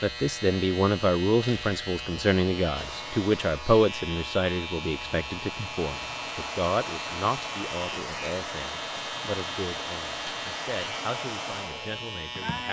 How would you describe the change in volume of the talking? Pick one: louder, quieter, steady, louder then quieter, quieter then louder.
quieter.